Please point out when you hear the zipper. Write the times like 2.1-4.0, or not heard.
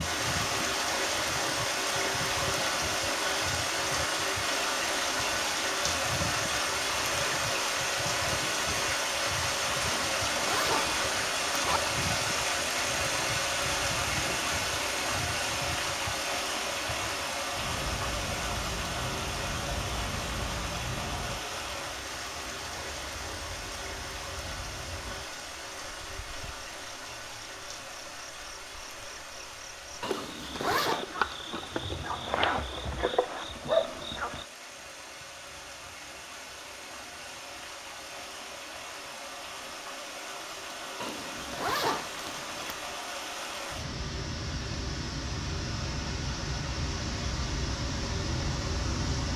9.8-11.8, 30.0-31.1, 41.0-42.8.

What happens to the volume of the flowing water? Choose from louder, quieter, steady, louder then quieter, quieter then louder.
quieter then louder.